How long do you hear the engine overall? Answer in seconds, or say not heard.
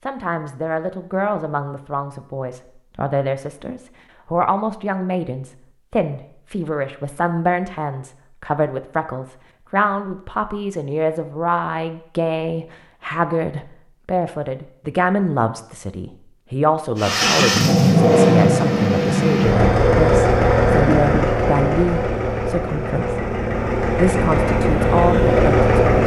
9 s.